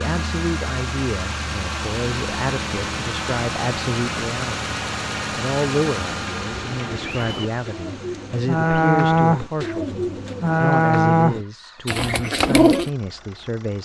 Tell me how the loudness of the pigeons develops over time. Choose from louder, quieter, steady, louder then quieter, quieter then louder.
louder then quieter.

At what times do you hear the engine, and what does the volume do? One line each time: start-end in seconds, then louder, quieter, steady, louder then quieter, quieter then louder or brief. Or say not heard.
0.0-13.8 quieter.